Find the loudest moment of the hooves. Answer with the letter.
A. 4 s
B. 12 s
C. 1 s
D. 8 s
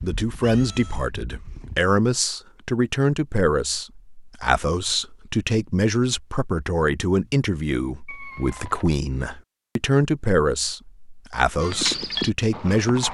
B.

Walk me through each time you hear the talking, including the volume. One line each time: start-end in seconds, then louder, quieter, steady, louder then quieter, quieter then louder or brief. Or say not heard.
0.0-13.0 steady.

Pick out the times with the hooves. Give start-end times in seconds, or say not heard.
0.0-1.8, 11.6-13.0.